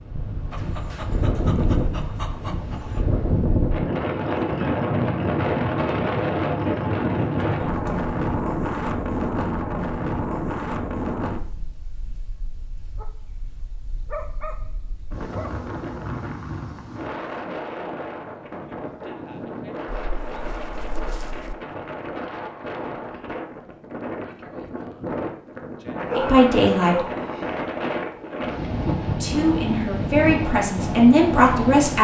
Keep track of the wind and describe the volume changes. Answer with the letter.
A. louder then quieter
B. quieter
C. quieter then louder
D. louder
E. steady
C.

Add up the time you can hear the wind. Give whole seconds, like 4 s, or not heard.
32 s.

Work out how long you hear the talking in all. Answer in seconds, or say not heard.
4 s.